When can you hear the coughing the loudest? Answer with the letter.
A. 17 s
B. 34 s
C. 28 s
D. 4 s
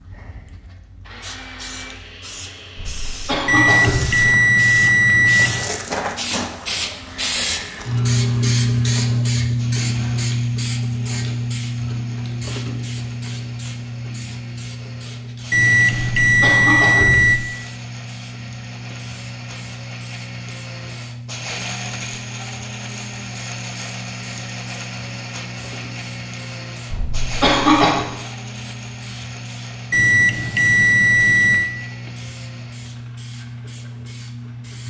C.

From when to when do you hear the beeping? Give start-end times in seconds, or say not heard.
3.5-5.7, 15.5-17.4, 29.9-31.7.